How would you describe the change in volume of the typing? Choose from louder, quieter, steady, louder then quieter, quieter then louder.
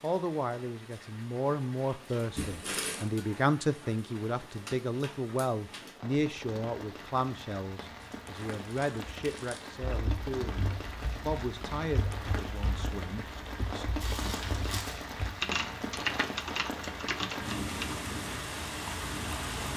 louder.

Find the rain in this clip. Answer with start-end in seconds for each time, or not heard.
0.0-19.7.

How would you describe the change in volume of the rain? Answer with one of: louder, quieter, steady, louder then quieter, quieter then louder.
louder.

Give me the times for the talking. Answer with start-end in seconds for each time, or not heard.
0.0-13.8.